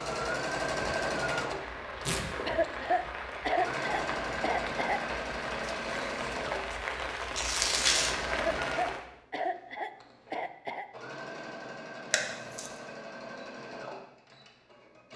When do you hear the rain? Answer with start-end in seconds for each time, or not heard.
0.0-9.1.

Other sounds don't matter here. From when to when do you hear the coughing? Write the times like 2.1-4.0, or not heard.
2.5-5.0, 8.3-10.8.